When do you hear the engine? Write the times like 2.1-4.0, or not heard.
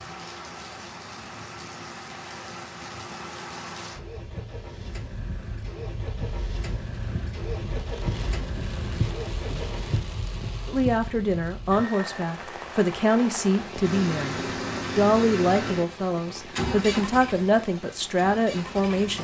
0.0-10.1, 13.8-19.1.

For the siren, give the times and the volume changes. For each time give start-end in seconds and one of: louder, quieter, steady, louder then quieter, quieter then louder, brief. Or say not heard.
not heard.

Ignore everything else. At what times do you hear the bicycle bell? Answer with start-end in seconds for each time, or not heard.
not heard.